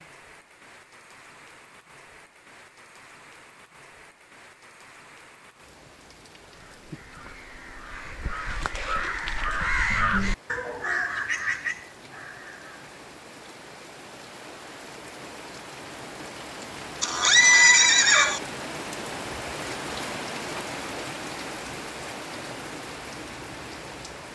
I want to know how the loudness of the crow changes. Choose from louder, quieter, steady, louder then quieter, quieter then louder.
louder then quieter.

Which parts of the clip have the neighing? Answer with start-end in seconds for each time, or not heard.
17.0-18.4.